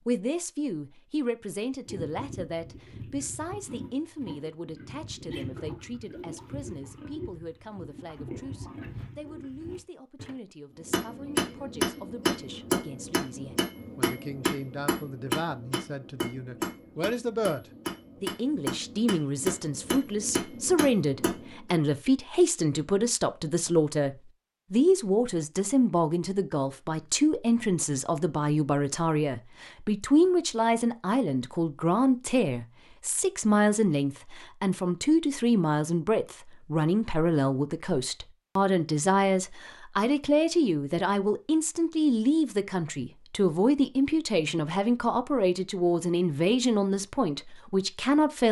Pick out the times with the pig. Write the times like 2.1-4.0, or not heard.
1.8-10.3.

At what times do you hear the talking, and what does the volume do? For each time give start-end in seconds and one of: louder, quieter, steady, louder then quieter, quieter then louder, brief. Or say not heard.
0.1-48.4 louder.